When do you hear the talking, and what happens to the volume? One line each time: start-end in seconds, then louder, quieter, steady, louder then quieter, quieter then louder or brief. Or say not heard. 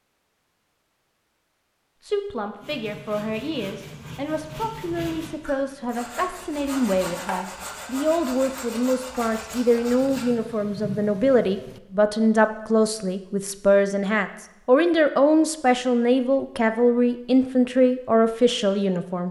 2.0-19.2 louder.